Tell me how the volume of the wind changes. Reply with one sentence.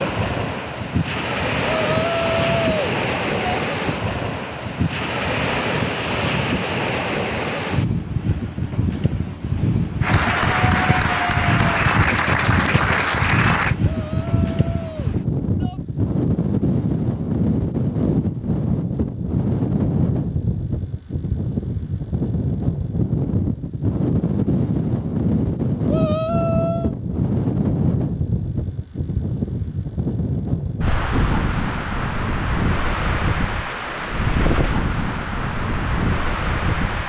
The volume of the wind stays about the same.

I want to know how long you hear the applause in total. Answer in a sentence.
You can hear the applause for 4 seconds altogether.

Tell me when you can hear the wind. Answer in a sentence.
The wind can be heard from 0.0 to 37.0 s.